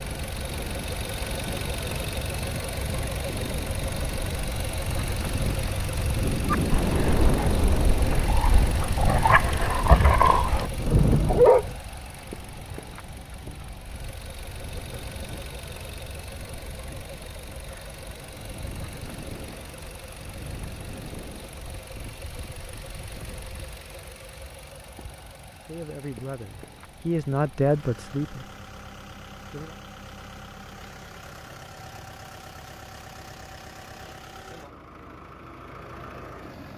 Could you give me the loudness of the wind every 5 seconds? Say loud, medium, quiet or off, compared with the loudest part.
medium, loud, quiet, quiet, quiet, off, off, off.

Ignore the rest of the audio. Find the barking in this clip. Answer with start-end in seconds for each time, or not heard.
6.5-11.7.